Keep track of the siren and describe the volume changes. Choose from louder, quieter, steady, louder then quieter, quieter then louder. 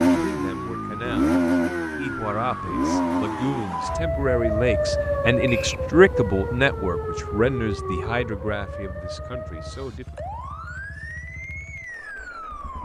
louder then quieter.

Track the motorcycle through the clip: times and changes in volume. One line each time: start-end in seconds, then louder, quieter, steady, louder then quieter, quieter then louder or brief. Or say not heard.
0.0-12.8 quieter.